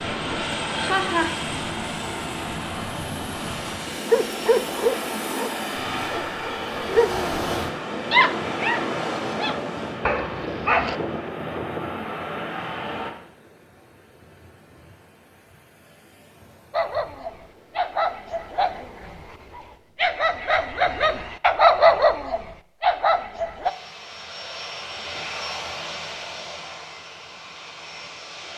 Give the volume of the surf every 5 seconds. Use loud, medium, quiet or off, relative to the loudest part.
loud, loud, quiet, quiet, off, off.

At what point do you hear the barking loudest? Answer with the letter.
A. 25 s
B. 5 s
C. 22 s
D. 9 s
C.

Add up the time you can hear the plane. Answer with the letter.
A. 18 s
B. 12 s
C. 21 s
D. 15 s
A.